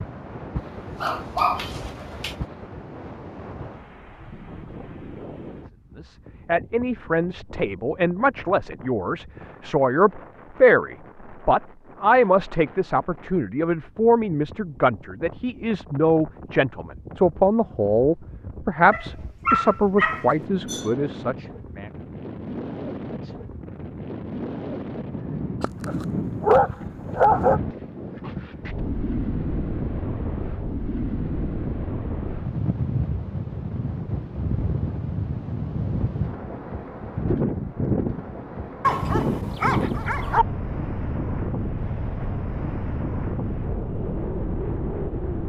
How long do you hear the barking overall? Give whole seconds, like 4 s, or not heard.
7 s.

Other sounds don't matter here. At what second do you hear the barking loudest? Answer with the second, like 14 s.
27 s.